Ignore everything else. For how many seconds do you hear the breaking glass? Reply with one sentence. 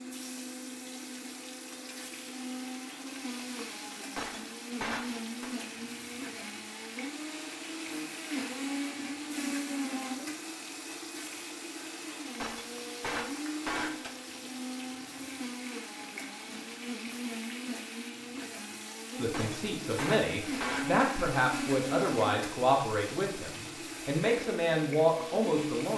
The breaking glass can be heard for 5 seconds in total.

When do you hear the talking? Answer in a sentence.
You can hear the talking from 19.1 to 25.9 s.